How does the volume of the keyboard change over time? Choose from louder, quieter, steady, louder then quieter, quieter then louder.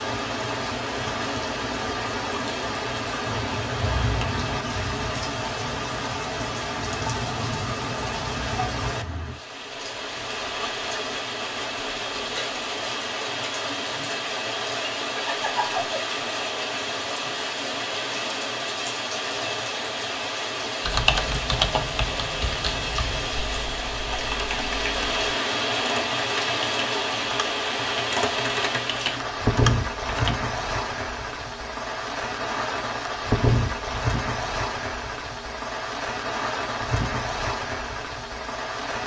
quieter then louder.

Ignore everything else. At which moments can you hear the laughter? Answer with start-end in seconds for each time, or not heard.
15.2-16.1.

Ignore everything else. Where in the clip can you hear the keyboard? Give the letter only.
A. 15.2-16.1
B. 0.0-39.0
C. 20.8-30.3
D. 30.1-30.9
C.